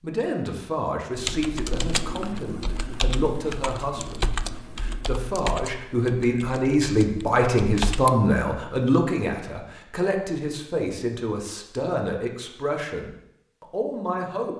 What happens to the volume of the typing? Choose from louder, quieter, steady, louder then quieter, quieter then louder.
quieter.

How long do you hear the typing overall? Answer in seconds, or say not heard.
7 s.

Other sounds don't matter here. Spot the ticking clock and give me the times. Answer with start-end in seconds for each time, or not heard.
not heard.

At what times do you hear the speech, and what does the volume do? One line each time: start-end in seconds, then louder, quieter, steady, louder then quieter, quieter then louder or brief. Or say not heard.
0.0-14.5 louder then quieter.